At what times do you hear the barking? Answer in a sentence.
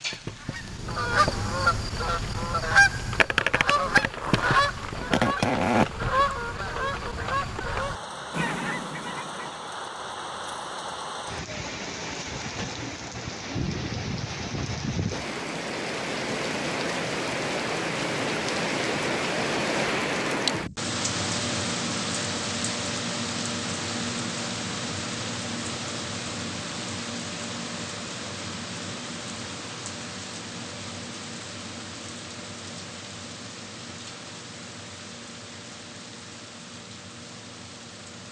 The barking can't be heard in this clip.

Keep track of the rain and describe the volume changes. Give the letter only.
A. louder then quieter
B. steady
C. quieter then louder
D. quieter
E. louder
A.